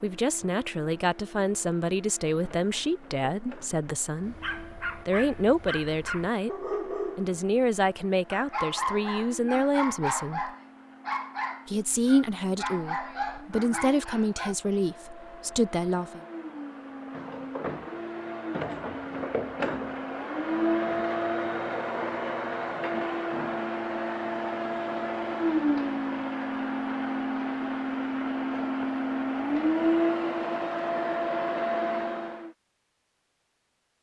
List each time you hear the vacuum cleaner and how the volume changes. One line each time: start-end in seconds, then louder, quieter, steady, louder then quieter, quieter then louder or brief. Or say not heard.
0.0-32.5 louder.